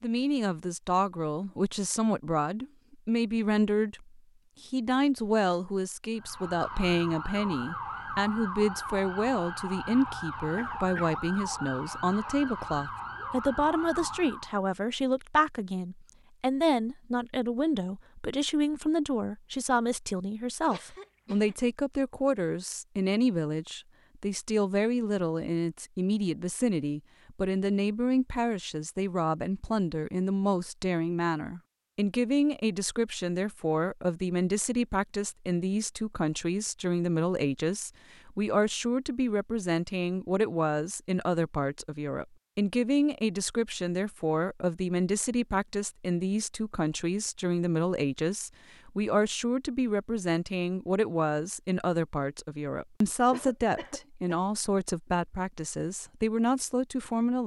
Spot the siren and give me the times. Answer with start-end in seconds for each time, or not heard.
6.2-14.6.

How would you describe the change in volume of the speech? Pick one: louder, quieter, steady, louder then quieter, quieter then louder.
steady.